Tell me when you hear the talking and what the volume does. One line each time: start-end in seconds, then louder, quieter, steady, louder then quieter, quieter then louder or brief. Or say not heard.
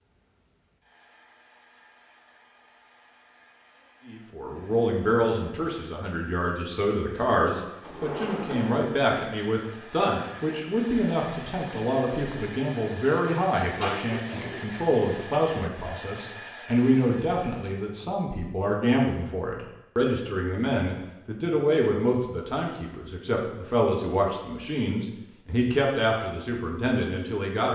4.0-27.7 steady.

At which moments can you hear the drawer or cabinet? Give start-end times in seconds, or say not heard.
7.8-8.9.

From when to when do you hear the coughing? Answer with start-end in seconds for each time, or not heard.
13.8-14.8.